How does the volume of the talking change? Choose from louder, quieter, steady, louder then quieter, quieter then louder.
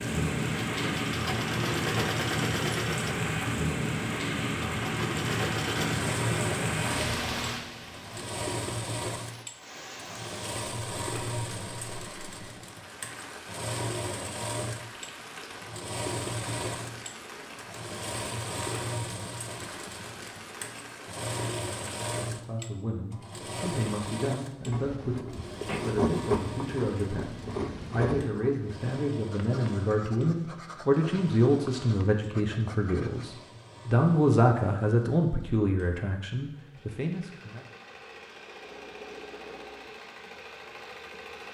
louder.